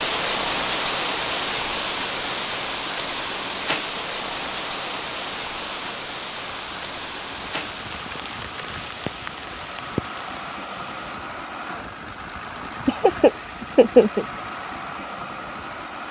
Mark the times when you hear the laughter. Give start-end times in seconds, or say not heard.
12.8-14.2.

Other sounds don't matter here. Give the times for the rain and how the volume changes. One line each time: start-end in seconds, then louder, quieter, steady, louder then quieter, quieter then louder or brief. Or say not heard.
0.0-11.2 quieter.